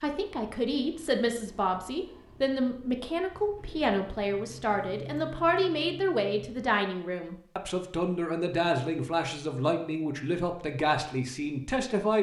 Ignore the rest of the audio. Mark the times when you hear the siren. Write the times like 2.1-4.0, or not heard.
not heard.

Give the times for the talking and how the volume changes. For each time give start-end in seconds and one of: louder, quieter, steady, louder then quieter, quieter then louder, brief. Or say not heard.
0.0-12.1 steady.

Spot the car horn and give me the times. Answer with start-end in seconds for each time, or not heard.
not heard.